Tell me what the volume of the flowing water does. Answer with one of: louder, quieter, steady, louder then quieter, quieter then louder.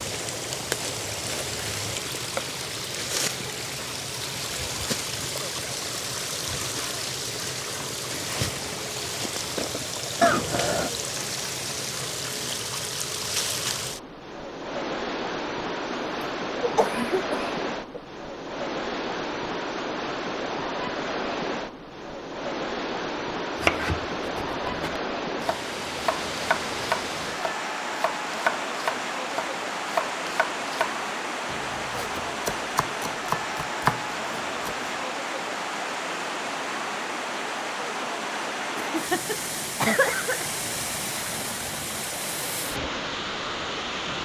steady.